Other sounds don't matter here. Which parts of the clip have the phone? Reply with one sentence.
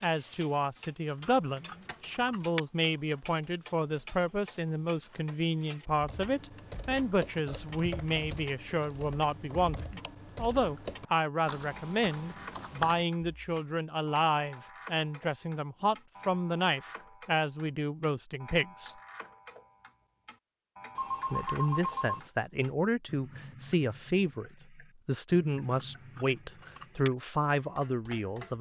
You can hear the phone from 20.9 to 22.3 s.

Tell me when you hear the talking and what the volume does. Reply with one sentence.
The talking can be heard from 0.0 to 18.9 s, at a steady volume; and from 21.3 to 28.5 s, at a steady volume.